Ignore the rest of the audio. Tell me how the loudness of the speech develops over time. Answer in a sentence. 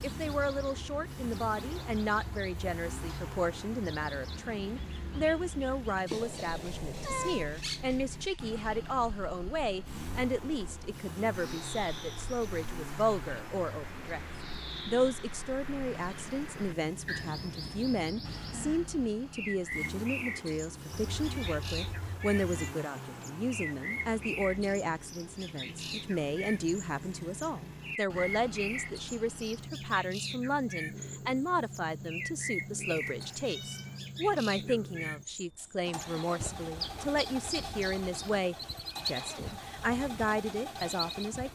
The volume of the speech stays about the same.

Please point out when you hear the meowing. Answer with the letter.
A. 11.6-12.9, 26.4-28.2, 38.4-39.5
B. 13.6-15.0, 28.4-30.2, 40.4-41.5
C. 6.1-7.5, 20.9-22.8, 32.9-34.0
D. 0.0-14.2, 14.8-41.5
C.